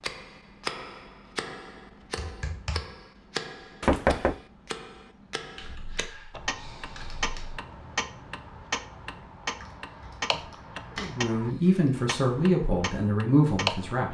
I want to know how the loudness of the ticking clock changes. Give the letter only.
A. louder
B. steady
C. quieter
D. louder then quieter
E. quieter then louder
B.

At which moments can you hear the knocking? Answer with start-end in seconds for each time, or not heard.
3.8-4.4.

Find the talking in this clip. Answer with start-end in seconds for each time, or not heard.
10.9-14.0.